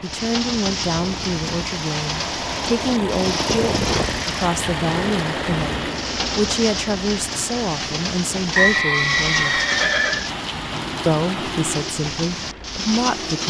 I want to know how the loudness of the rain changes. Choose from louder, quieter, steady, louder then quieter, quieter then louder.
steady.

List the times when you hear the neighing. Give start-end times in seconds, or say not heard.
8.6-10.3.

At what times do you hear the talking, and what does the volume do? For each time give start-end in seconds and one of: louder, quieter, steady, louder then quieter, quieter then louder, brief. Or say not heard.
0.0-9.7 steady
11.1-13.4 brief.